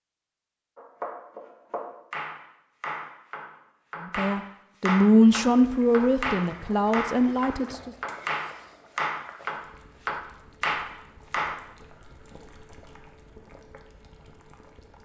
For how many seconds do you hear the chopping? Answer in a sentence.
The chopping can be heard for 11 seconds in total.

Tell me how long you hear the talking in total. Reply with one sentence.
The talking can be heard for 4 seconds in total.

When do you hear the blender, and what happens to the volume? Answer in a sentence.
The blender can't be heard in this clip.